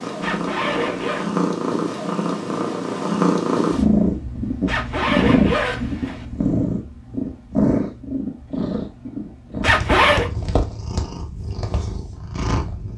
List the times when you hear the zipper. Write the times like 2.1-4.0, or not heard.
0.2-1.3, 4.7-6.2, 9.6-10.3.